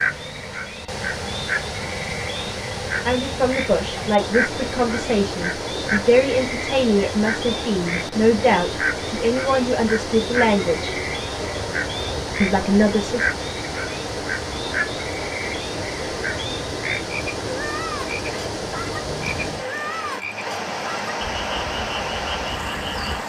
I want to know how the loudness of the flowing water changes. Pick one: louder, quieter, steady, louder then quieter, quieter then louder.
steady.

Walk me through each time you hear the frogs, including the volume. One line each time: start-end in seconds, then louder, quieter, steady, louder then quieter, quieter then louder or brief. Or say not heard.
0.0-23.2 steady.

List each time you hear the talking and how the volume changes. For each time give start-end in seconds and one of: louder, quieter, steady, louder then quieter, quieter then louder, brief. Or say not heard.
3.0-10.9 steady
12.4-13.3 brief.